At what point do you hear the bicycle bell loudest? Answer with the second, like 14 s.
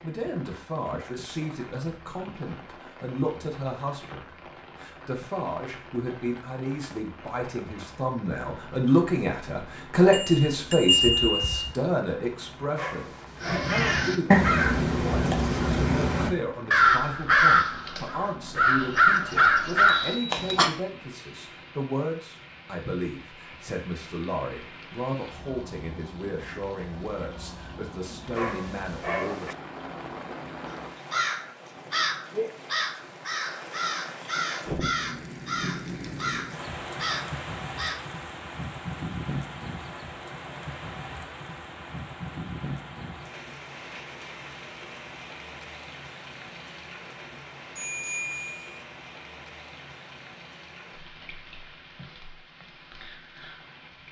11 s.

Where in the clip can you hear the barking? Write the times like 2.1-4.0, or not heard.
12.8-13.8, 28.4-29.6.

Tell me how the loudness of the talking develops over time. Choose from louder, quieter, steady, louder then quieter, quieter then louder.
louder then quieter.